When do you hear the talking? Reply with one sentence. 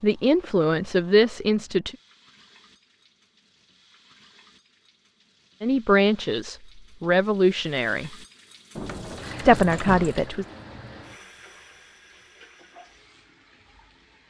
You can hear the talking from 0.0 to 1.9 s, from 5.6 to 8.1 s and from 9.4 to 10.4 s.